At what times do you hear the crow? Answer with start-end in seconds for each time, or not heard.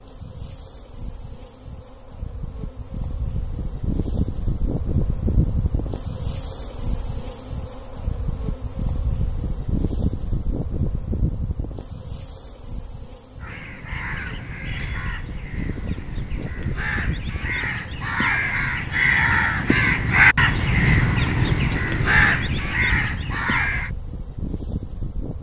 13.4-23.9.